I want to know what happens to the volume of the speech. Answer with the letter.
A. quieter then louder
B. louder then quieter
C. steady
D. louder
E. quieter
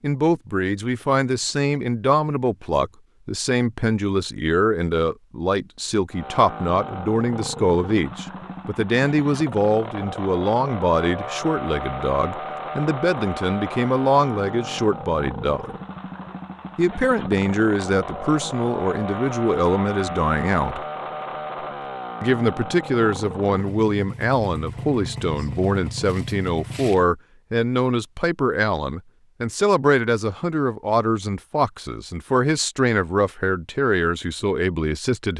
C.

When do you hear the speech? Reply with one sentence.
You can hear the speech from 0.0 to 15.8 s, from 16.8 to 20.8 s and from 22.2 to 35.3 s.